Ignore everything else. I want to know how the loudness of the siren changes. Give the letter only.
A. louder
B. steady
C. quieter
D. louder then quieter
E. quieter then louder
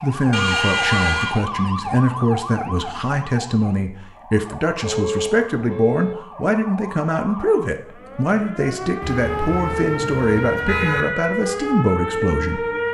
E.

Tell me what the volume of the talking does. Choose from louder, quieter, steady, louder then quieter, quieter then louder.
steady.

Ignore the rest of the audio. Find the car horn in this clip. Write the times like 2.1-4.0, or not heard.
0.3-1.4, 4.8-6.2, 9.0-11.1.